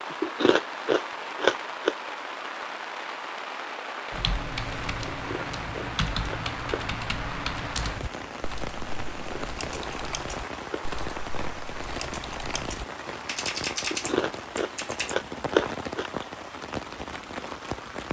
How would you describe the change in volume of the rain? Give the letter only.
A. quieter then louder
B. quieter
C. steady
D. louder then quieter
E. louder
C.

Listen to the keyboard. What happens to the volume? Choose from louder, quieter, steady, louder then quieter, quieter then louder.
quieter then louder.